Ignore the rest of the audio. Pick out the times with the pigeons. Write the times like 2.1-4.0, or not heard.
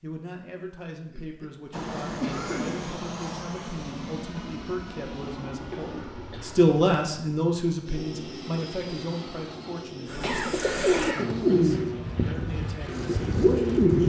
10.1-14.0.